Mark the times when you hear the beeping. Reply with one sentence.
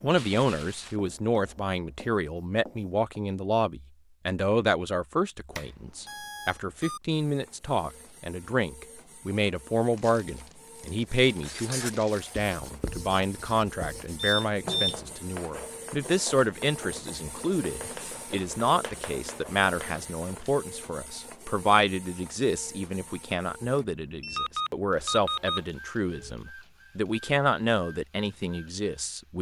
The beeping can be heard from 5.5 to 7.0 s, from 14.2 to 15.0 s and from 24.4 to 26.4 s.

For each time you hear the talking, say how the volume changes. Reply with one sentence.
You can hear the talking from 0.0 to 29.3 s, at a steady volume.